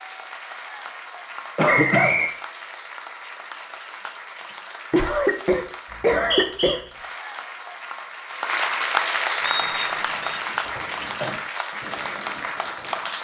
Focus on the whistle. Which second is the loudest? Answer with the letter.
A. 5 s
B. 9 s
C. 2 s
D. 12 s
C.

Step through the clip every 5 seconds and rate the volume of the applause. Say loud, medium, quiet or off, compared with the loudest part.
medium, loud, loud.